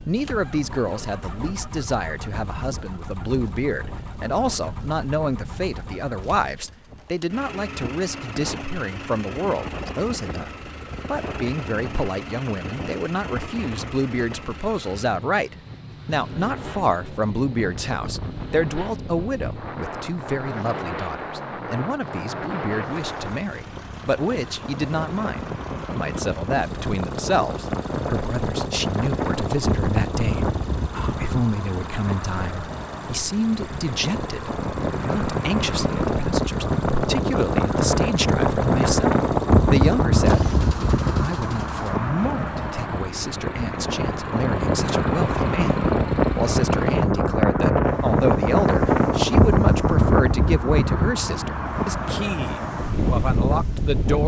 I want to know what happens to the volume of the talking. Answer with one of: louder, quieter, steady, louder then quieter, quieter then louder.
steady.